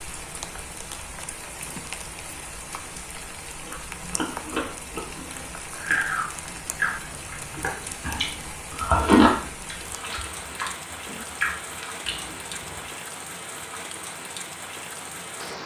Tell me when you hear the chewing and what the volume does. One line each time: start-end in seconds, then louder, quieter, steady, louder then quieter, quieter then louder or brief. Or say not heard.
3.6-13.0 louder then quieter.